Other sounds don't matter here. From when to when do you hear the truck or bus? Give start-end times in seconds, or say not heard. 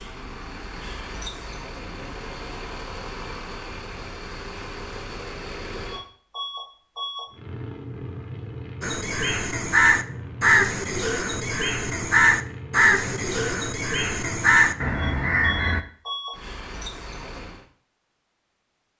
0.0-17.6.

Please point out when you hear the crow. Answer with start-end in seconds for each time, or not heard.
8.8-15.8.